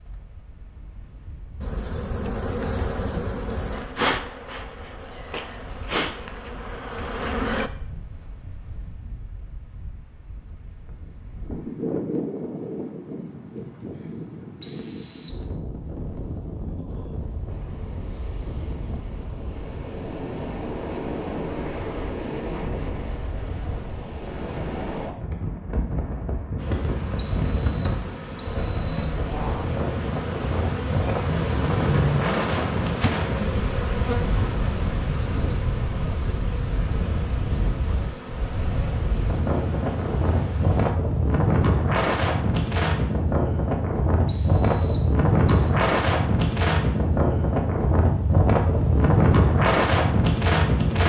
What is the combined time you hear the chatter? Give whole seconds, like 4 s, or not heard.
not heard.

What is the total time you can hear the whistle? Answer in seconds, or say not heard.
4 s.